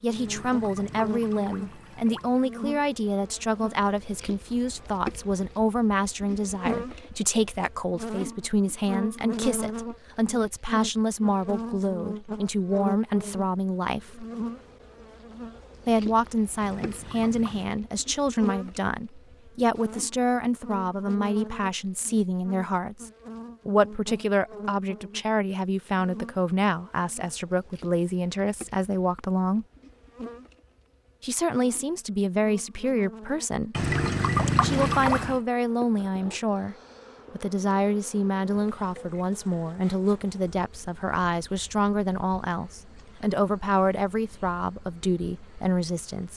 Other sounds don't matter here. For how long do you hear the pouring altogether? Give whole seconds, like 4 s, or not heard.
5 s.